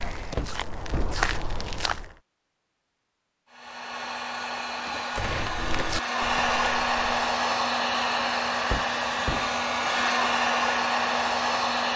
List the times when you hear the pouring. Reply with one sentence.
You can't hear the pouring here.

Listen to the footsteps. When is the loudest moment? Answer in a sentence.
The loudest moment of the footsteps is at 1 second.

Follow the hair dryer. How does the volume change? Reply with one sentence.
The volume of the hair dryer goes up.